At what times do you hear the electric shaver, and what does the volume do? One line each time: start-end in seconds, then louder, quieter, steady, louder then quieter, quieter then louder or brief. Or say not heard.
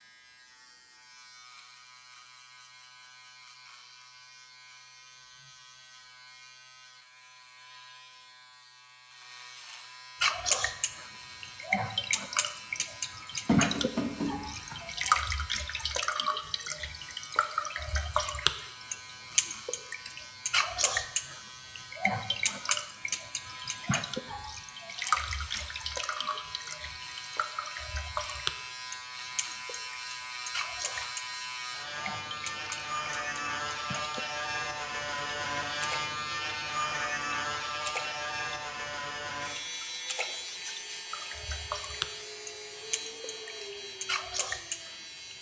0.0-45.3 louder.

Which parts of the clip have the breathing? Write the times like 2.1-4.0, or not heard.
not heard.